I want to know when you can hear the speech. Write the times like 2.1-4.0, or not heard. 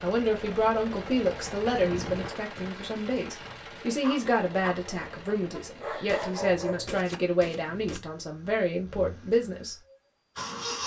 0.0-9.8.